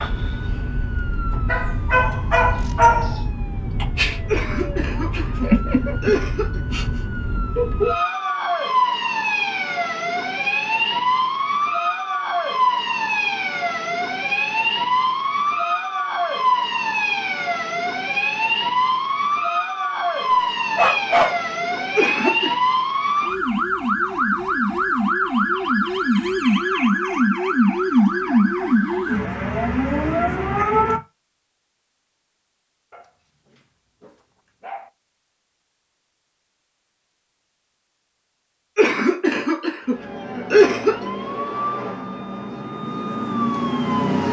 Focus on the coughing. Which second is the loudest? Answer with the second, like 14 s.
41 s.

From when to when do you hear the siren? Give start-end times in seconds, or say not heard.
0.0-31.0, 39.8-44.2.